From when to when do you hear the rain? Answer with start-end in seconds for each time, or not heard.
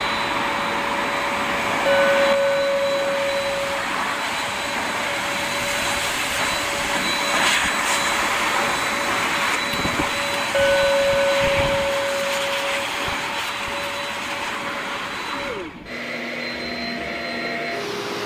not heard.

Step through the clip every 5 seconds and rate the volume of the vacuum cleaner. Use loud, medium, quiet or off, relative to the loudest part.
loud, loud, loud, medium.